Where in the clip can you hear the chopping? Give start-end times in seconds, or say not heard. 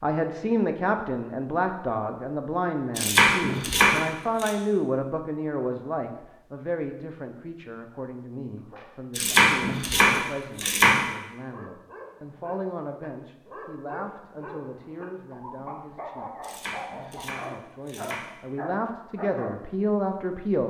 3.0-4.5, 9.2-11.1, 16.4-18.4.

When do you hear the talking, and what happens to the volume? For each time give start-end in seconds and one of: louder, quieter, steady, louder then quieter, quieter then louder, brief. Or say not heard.
0.0-20.6 quieter then louder.